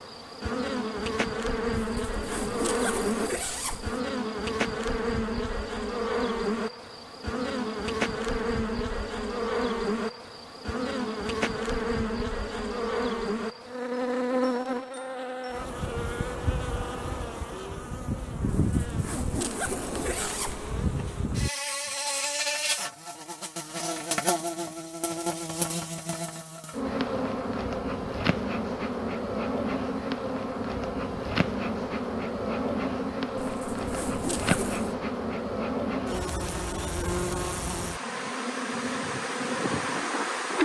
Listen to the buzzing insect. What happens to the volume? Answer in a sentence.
The volume of the buzzing insect stays about the same.